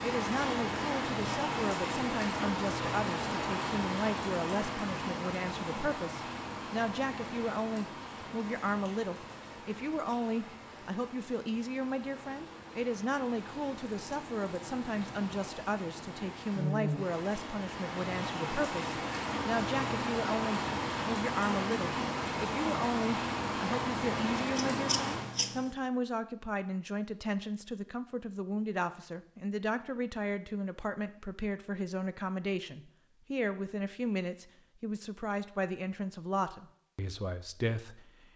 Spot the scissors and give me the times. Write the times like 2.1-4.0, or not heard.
24.6-25.7.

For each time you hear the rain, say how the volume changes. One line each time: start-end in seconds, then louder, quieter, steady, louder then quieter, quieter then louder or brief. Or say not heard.
0.0-25.4 quieter then louder.